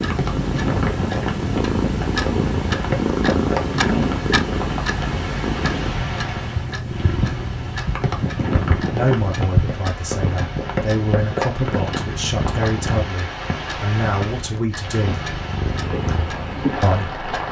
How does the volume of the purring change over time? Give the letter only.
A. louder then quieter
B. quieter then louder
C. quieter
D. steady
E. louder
C.